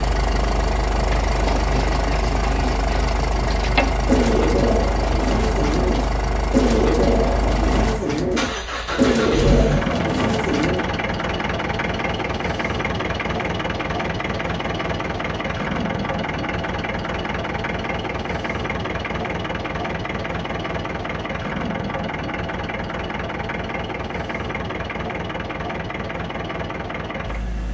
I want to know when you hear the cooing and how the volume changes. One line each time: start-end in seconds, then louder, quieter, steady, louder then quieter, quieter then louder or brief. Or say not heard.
1.2-10.9 louder.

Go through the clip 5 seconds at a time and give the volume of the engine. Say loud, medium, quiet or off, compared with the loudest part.
loud, loud, loud, loud, loud, medium.